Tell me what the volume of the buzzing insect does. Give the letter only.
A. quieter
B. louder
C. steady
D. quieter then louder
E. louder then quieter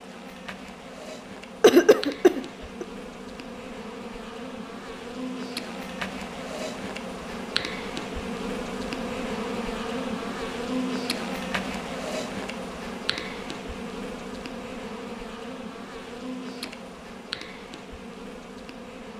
E.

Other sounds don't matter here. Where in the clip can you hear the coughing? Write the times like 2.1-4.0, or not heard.
1.6-2.9.